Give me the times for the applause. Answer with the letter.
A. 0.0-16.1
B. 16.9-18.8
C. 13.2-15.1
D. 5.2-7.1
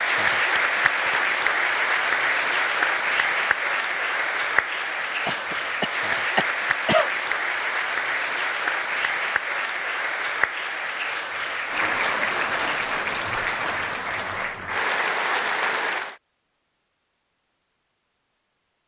A.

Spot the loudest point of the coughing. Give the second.
7 s.